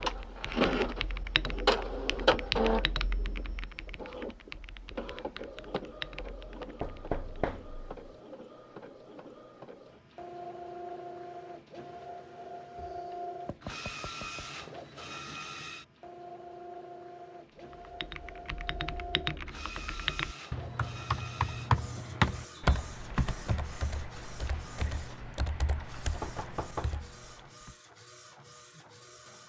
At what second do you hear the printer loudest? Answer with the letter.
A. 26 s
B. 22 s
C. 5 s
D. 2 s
D.